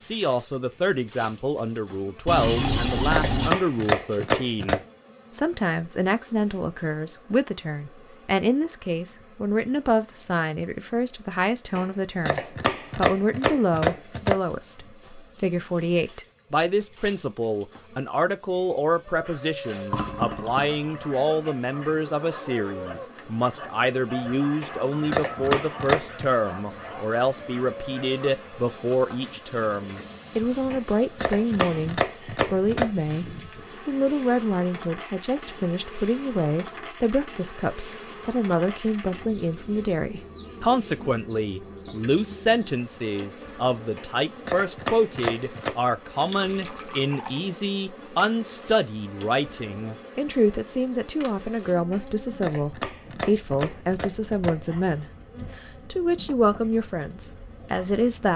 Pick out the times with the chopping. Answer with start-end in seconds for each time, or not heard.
2.6-4.8, 11.8-14.4, 24.6-26.2, 30.7-32.9, 44.0-45.8, 51.9-54.6.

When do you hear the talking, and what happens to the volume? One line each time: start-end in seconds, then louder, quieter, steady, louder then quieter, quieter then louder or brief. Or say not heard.
0.0-58.3 steady.